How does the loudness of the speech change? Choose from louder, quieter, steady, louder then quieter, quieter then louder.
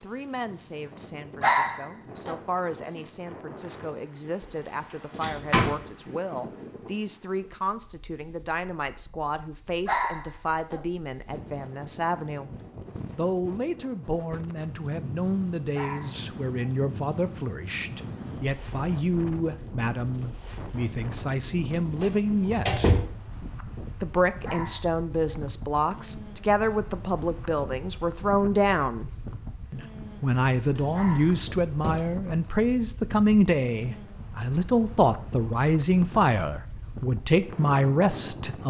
louder.